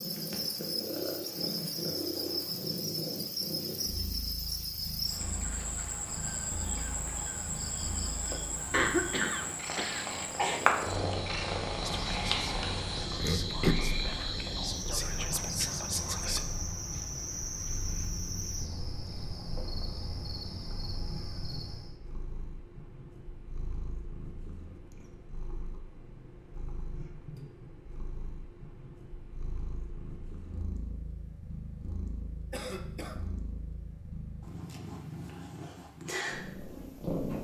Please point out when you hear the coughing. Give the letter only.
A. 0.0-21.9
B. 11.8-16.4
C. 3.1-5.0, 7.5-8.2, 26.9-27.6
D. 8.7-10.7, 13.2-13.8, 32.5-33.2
D.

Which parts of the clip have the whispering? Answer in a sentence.
You can hear the whispering from 11.8 to 16.4 s.